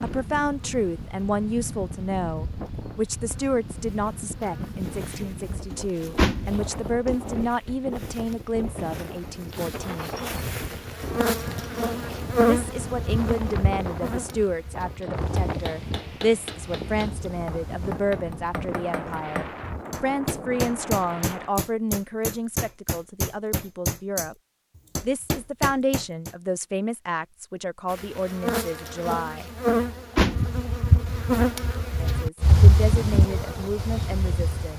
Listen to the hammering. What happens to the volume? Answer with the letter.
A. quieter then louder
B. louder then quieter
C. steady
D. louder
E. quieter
D.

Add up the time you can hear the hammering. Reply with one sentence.
You can hear the hammering for 11 seconds altogether.